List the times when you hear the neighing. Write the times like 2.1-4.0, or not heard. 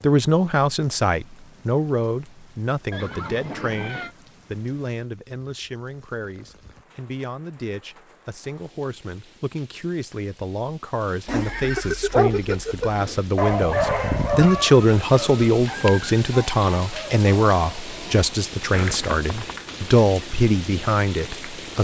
2.9-4.2, 11.2-12.9, 18.7-19.6.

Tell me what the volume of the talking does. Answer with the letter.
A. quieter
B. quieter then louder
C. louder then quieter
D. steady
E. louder
B.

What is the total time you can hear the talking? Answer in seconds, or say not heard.
22 s.